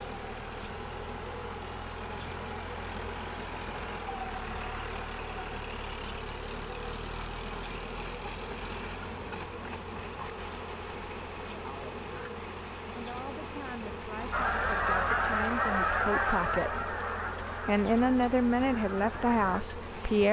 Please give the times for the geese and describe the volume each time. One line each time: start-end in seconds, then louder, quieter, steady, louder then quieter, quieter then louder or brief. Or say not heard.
14.3-19.6 quieter.